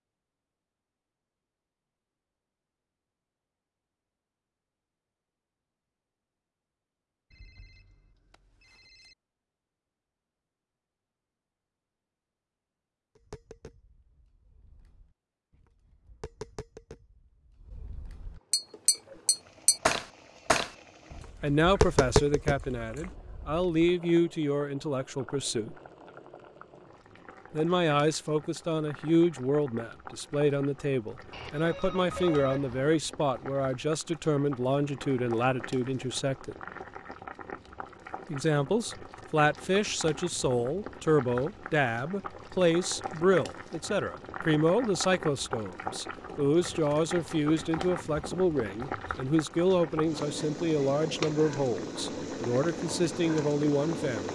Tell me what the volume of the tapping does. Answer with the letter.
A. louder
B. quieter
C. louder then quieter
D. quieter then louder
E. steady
A.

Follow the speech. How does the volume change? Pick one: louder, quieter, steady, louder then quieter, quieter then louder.
steady.